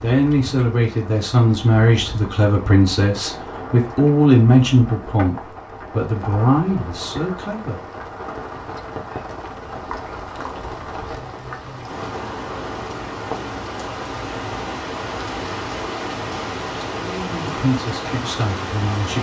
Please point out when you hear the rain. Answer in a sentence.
The rain can be heard from 0.0 to 19.1 s.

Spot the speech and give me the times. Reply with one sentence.
You can hear the speech from 0.0 to 7.8 s and from 16.9 to 19.1 s.